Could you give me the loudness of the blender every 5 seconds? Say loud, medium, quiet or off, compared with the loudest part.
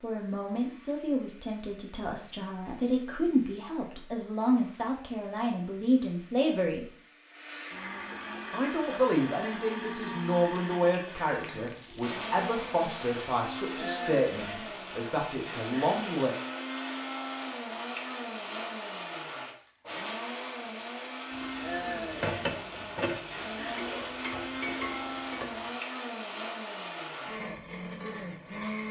quiet, medium, loud, loud, loud, loud.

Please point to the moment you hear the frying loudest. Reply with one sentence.
The volume of the frying peaks at 23 seconds.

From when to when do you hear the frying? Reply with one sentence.
The frying can be heard from 11.3 to 13.3 s and from 21.3 to 25.8 s.